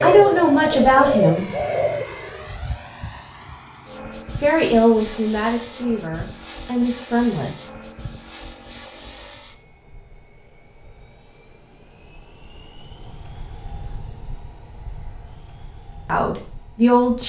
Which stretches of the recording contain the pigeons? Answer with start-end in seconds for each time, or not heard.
0.0-2.0.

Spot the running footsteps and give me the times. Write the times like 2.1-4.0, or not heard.
not heard.